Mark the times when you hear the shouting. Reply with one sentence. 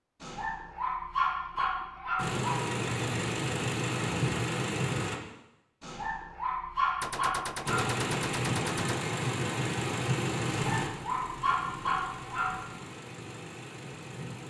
The shouting can't be heard in this clip.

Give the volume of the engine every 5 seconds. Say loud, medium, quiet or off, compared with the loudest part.
loud, loud, medium.